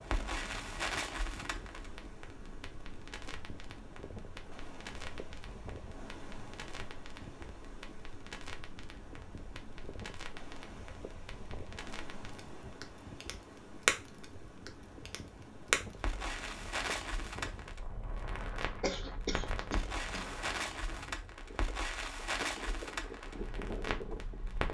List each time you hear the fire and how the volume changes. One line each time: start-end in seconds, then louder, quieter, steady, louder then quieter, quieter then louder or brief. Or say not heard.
0.0-24.6 quieter then louder.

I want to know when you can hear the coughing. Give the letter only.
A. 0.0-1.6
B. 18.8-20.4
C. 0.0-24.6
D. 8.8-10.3
B.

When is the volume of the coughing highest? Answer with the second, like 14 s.
19 s.